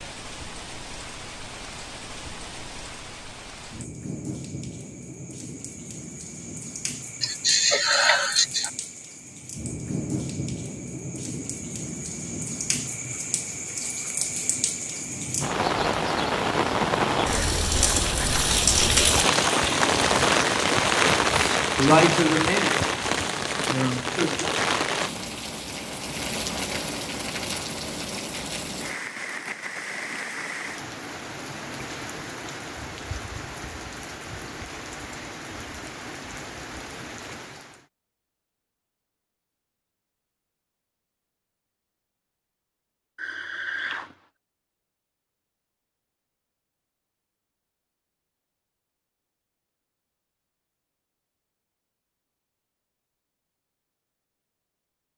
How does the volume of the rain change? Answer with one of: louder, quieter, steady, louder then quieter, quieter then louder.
louder then quieter.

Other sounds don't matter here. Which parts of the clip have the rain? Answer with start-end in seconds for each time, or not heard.
0.0-37.9.